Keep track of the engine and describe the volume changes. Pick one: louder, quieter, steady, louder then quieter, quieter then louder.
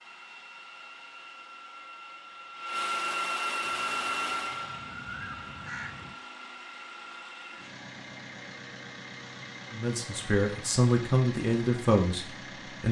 louder then quieter.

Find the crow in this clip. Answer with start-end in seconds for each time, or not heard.
3.6-6.2.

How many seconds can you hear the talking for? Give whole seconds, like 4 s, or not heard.
3 s.